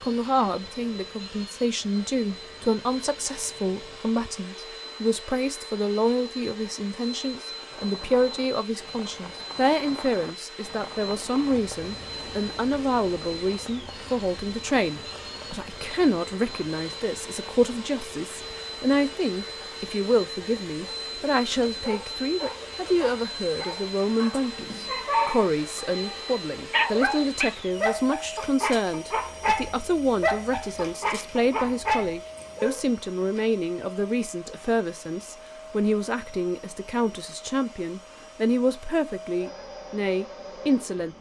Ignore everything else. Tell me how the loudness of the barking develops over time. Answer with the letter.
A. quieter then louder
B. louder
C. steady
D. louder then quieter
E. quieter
B.